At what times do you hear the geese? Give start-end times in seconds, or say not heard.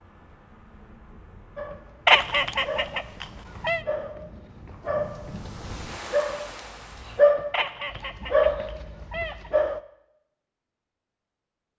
2.0-3.8, 7.5-9.5.